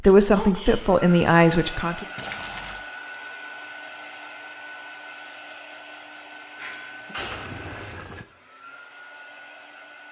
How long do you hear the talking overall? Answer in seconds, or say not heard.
2 s.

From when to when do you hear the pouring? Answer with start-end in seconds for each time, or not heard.
2.1-2.9, 7.2-8.2.